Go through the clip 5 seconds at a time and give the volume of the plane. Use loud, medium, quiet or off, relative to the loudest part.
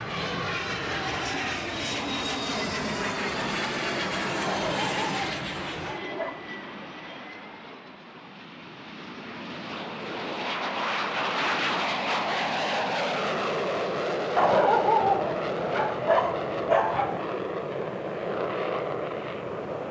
loud, medium, loud, loud.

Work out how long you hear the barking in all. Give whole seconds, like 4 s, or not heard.
5 s.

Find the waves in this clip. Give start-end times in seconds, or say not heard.
not heard.